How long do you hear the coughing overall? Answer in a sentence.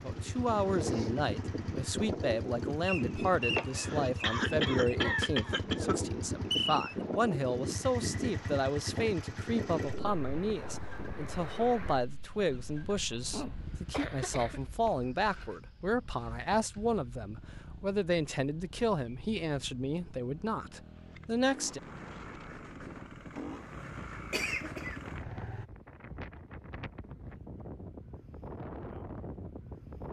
The coughing can be heard for 5 seconds in total.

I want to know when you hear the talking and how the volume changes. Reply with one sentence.
The talking can be heard from 0.0 to 21.8 s, at a steady volume.